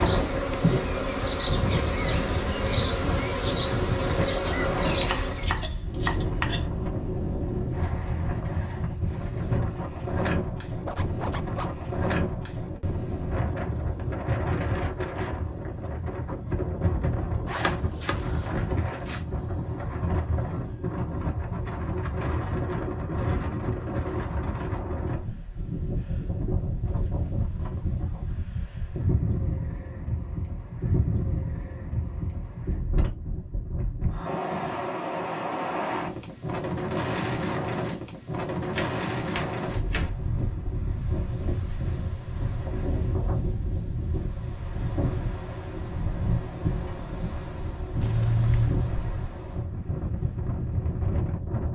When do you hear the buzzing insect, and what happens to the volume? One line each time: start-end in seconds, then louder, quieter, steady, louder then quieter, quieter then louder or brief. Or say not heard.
0.0-5.6 steady.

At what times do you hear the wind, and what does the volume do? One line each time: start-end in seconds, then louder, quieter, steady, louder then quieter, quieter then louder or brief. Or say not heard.
0.0-51.7 steady.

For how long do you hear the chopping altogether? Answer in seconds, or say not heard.
5 s.